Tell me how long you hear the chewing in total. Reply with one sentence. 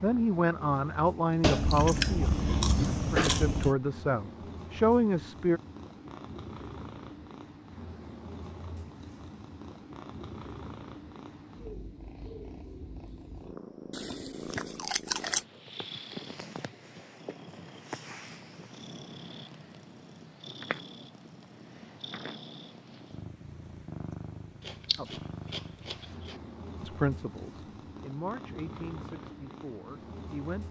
The chewing can be heard for 6 seconds in total.